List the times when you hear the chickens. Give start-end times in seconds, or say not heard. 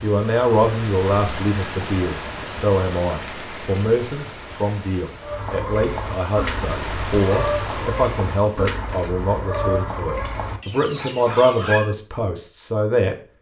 5.2-11.9.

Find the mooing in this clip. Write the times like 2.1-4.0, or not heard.
not heard.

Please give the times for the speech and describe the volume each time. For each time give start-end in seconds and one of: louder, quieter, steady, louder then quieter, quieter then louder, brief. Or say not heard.
0.0-13.2 steady.